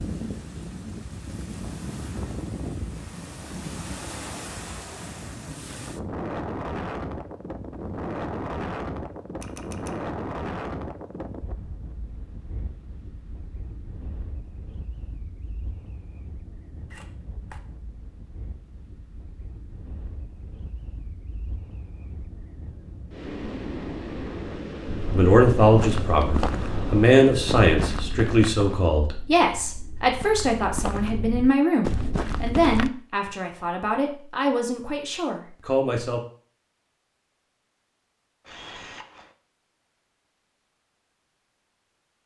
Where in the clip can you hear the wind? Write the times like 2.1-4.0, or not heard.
0.0-27.9.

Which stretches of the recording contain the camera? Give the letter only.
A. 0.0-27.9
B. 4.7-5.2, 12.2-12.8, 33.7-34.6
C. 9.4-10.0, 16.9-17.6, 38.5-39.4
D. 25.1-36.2
C.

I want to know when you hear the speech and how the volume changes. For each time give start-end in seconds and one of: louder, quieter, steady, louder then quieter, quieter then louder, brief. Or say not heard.
25.1-36.2 quieter.